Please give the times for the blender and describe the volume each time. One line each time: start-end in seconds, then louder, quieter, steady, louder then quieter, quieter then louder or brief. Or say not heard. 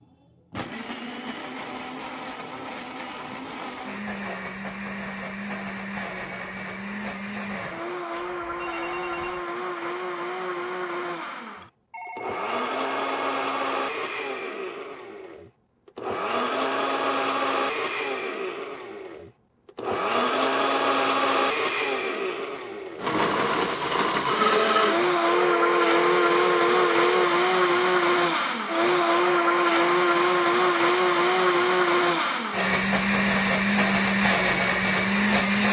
0.0-35.6 louder.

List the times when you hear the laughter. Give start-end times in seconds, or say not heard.
not heard.